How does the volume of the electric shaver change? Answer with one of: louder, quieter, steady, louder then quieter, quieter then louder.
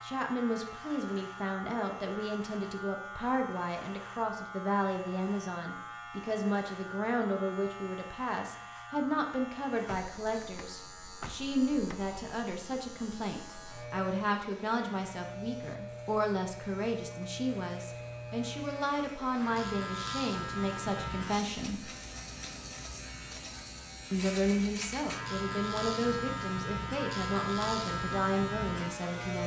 louder.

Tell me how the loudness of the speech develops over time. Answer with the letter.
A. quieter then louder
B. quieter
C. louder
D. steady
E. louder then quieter
D.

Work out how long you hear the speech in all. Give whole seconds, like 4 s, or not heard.
27 s.